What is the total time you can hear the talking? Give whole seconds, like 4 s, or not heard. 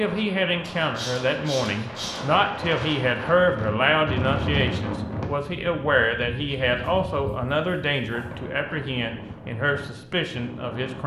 11 s.